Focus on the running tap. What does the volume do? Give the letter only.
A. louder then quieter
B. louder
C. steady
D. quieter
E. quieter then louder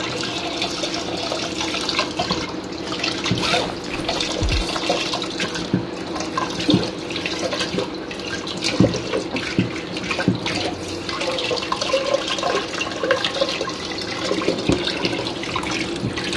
C.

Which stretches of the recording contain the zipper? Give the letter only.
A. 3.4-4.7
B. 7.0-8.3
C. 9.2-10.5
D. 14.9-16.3
A.